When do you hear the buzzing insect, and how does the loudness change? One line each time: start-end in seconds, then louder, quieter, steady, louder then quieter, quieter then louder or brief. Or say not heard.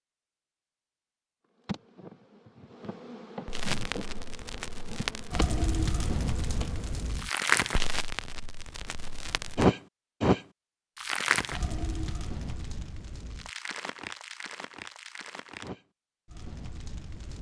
1.6-7.0 louder then quieter.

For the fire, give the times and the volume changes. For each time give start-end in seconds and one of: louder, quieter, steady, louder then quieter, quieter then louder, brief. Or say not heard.
3.5-17.3 louder then quieter.